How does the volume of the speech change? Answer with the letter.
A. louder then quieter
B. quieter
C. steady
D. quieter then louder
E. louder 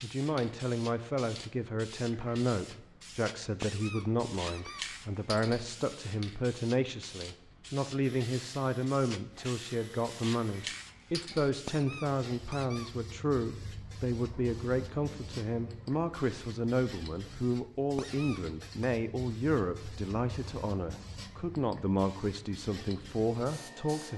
C.